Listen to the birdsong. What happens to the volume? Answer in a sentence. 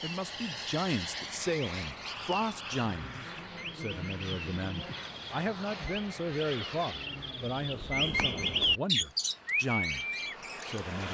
The volume of the birdsong goes up.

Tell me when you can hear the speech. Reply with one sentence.
The speech can be heard from 0.0 to 11.0 s.